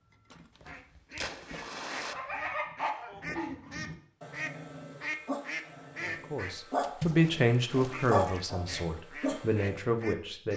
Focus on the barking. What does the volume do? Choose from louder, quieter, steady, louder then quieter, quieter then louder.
quieter then louder.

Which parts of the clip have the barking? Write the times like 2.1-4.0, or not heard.
2.1-9.8.